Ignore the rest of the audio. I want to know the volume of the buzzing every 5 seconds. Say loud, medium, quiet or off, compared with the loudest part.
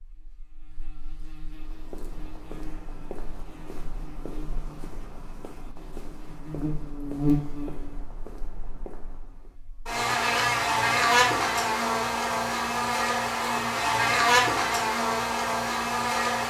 quiet, medium, loud, loud.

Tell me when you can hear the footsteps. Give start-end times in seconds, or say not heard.
1.4-9.6.